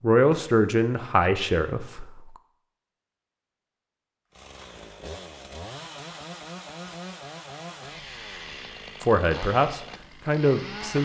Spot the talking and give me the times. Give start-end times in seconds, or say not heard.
0.0-2.2, 9.0-11.0.